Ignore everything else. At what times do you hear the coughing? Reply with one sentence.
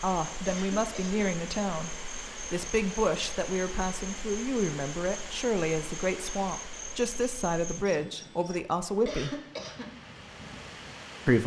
The coughing can be heard from 0.5 to 1.2 s and from 9.1 to 9.9 s.